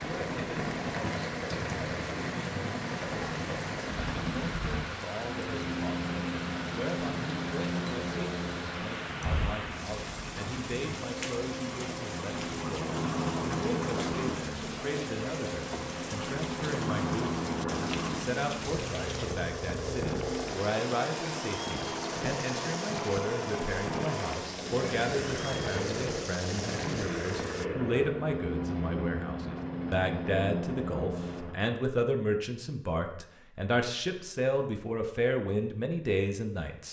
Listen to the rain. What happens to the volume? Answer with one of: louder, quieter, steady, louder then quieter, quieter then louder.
steady.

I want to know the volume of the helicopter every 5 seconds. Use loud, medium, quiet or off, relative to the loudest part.
loud, loud, loud, loud, loud, loud, loud, off.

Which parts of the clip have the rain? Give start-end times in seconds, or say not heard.
0.0-27.6.